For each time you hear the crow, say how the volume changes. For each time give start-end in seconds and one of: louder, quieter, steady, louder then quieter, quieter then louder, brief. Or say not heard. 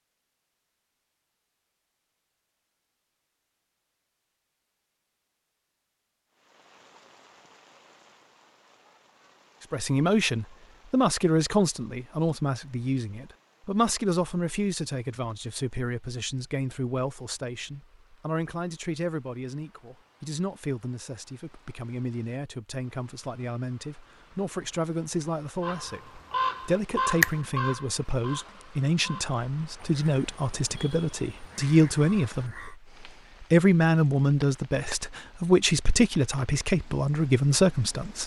25.6-32.8 quieter.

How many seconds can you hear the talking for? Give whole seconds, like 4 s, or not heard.
28 s.